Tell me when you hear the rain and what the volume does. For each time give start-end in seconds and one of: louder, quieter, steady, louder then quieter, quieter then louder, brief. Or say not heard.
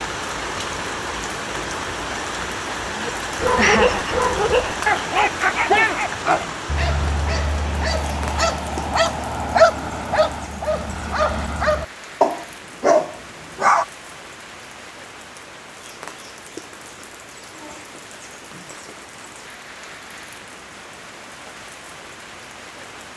0.0-23.1 quieter.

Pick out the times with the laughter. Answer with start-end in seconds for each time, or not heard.
3.5-4.2.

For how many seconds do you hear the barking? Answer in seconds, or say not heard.
11 s.